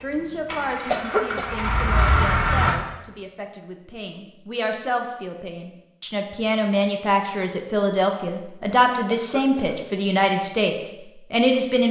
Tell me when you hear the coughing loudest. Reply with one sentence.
The volume of the coughing peaks at 1 second.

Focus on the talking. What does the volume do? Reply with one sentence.
The volume of the talking goes up.